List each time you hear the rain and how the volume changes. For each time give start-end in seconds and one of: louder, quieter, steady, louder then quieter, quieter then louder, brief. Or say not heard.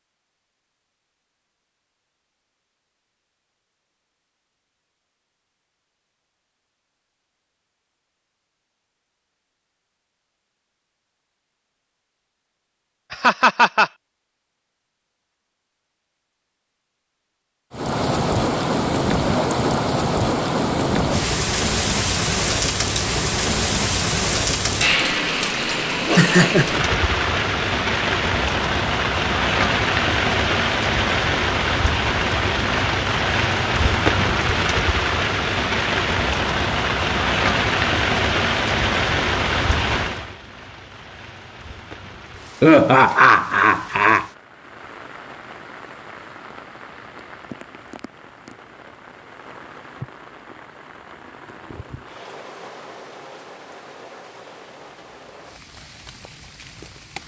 17.7-57.2 quieter.